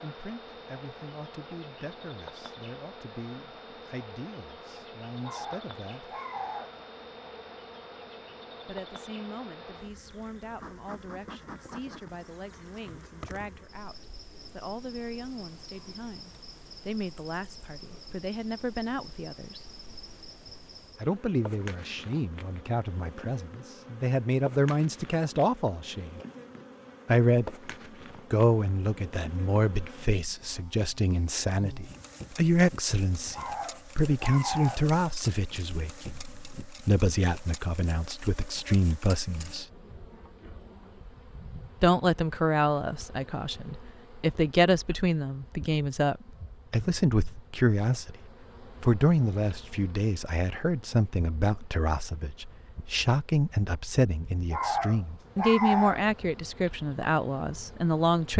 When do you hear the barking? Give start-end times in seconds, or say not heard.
5.2-6.8, 33.3-34.9, 54.5-56.0.